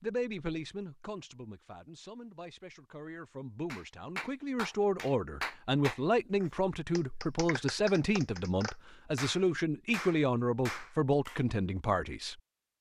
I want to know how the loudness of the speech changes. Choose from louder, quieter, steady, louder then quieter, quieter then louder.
louder.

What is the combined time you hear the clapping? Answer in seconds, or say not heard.
8 s.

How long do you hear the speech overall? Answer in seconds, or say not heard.
12 s.